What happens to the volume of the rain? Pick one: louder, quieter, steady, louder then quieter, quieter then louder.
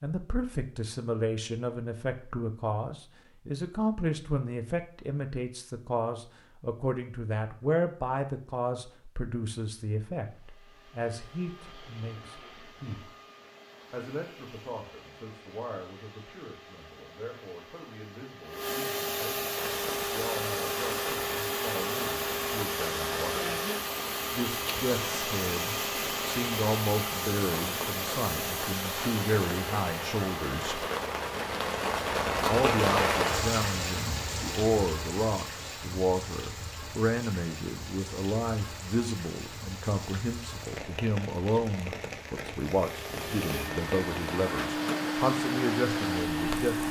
louder then quieter.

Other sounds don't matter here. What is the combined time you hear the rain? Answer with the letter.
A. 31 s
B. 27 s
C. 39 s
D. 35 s
B.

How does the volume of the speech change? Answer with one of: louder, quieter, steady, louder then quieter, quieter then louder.
quieter then louder.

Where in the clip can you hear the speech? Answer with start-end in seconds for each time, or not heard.
0.0-13.2, 13.9-23.6, 24.3-30.8, 32.5-46.8.